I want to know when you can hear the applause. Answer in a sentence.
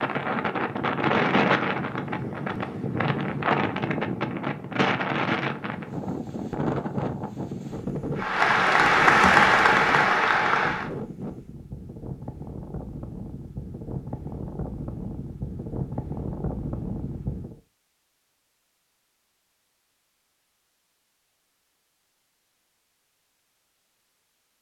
The applause can be heard from 8.2 to 10.9 s.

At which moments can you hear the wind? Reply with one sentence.
The wind can be heard from 0.0 to 17.6 s.